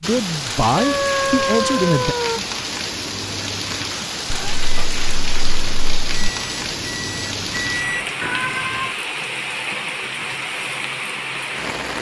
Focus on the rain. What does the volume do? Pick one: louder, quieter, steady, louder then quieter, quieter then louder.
steady.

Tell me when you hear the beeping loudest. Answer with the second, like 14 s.
8 s.